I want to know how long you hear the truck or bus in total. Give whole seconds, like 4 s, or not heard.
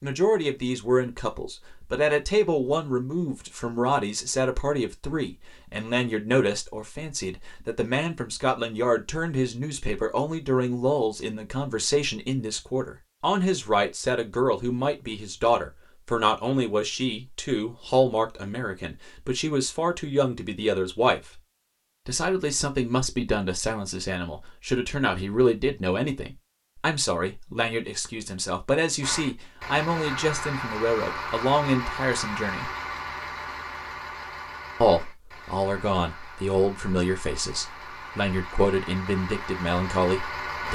12 s.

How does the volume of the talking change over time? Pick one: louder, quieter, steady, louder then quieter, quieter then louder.
steady.